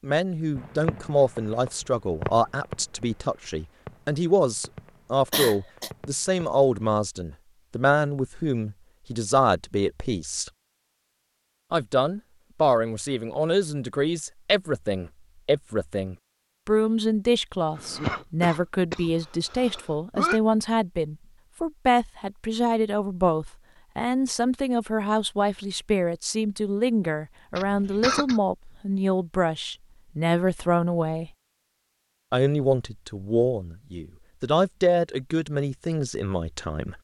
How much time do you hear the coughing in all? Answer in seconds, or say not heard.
4 s.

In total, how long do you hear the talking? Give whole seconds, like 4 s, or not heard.
35 s.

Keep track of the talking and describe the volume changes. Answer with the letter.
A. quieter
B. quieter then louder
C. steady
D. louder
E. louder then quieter
C.